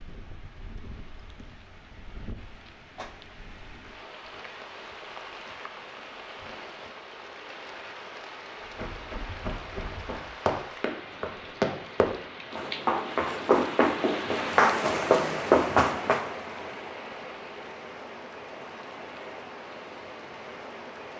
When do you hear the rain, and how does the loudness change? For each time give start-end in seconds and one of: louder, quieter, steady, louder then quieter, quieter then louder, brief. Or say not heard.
0.0-21.1 louder then quieter.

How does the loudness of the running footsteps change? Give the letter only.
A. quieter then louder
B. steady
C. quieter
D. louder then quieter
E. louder
E.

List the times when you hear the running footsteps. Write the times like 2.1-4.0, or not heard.
8.7-16.2.